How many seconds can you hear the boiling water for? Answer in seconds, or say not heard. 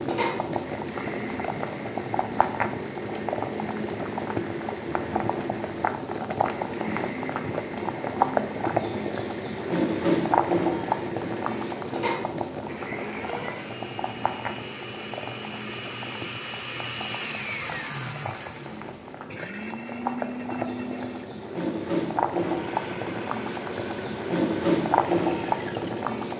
26 s.